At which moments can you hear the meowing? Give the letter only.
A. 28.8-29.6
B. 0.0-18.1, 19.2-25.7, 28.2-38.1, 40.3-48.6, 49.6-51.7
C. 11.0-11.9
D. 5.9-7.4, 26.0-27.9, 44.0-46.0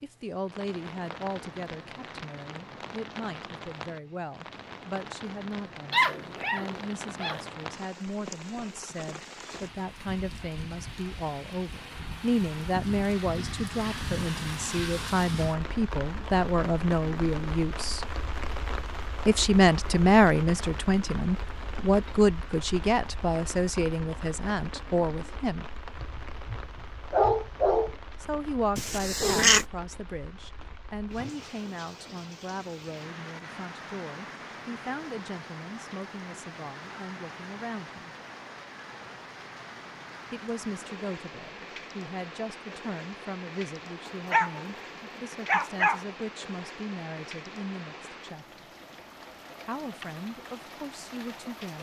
A.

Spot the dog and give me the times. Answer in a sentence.
The dog can be heard from 5.9 to 7.4 s, from 26.0 to 27.9 s and from 44.0 to 46.0 s.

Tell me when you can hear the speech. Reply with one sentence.
You can hear the speech from 0.0 to 18.1 s, from 19.2 to 25.7 s, from 28.2 to 38.1 s, from 40.3 to 48.6 s and from 49.6 to 51.7 s.